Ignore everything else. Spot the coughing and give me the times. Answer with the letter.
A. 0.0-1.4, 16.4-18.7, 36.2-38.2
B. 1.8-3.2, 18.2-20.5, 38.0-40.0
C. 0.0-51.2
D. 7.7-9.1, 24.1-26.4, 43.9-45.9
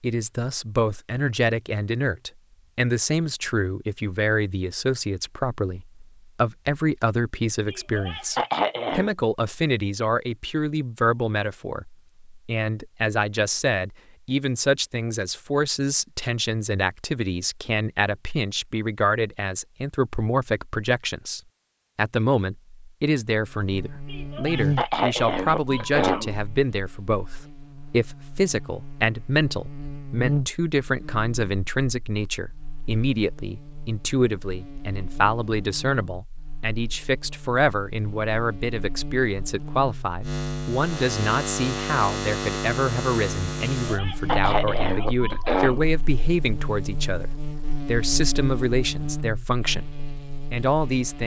D.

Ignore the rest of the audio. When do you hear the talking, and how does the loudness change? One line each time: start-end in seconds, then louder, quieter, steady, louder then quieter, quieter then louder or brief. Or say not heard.
0.0-51.2 steady.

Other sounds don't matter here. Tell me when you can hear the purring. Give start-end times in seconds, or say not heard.
not heard.